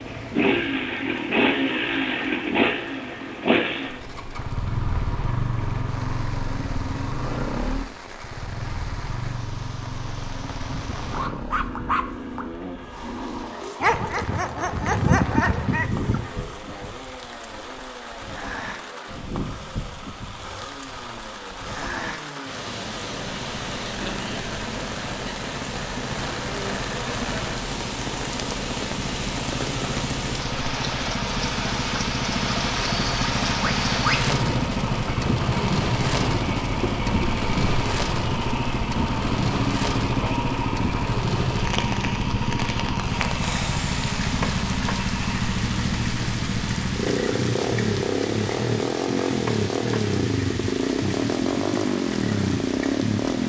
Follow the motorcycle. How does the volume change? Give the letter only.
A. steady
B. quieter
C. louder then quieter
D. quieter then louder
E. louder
D.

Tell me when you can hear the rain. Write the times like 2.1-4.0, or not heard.
0.0-53.4.